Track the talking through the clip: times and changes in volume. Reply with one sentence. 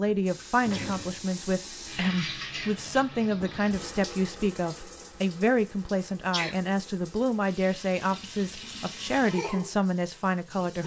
You can hear the talking from 0.0 to 10.8 s, at a steady volume.